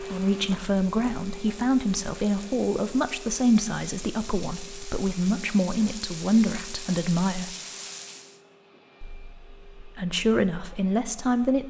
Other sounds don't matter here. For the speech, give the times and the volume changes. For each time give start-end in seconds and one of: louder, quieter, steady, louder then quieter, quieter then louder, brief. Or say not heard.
0.0-7.5 steady
9.1-11.6 brief.